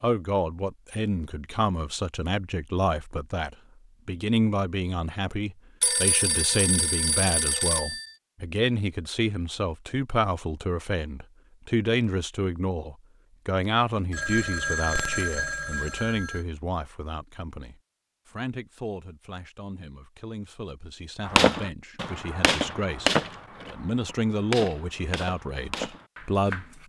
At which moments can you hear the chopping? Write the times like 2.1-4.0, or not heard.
21.2-26.8.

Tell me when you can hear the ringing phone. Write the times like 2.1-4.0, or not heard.
5.8-8.1, 14.1-16.4.